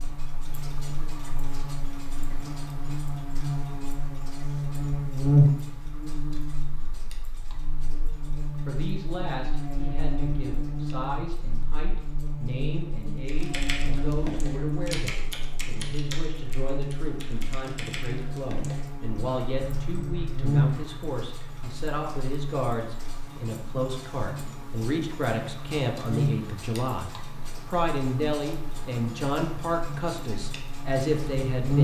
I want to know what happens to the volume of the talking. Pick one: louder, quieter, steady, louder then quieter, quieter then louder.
louder.